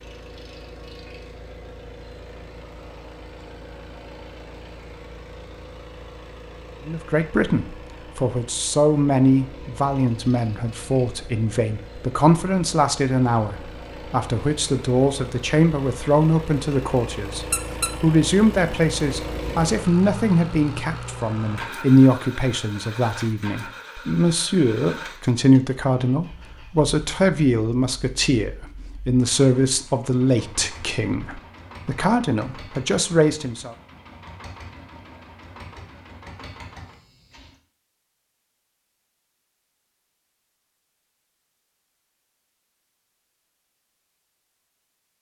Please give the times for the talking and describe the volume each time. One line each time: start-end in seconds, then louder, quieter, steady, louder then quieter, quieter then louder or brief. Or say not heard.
6.8-33.8 steady.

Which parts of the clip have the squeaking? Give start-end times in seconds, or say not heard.
17.5-17.9.